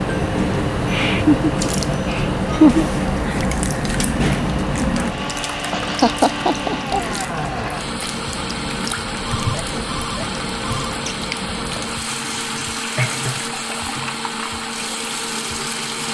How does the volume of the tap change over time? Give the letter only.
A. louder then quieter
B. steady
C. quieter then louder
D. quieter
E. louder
D.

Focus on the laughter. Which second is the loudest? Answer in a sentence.
The loudest moment of the laughter is at 3 seconds.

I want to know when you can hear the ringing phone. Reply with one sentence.
The ringing phone can be heard from 9.2 to 10.9 s.